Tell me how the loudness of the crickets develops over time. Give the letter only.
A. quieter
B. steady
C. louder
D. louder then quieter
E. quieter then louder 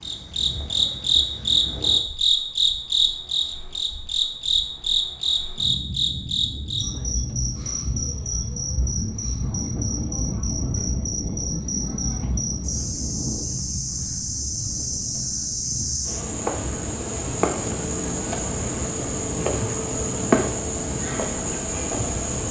E.